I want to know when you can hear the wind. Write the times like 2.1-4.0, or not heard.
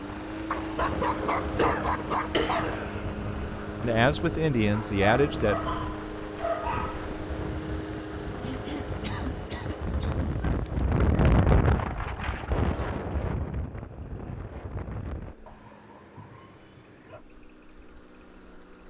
0.0-15.3.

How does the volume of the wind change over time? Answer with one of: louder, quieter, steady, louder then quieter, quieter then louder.
louder then quieter.